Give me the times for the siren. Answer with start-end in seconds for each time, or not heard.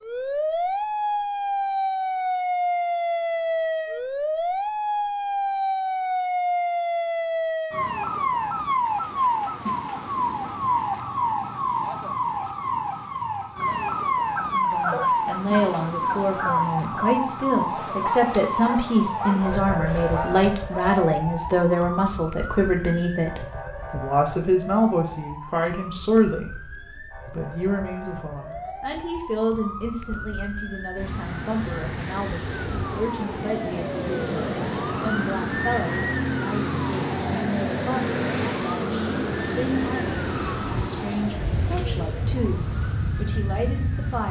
0.0-44.2.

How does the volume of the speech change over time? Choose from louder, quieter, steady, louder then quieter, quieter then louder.
quieter.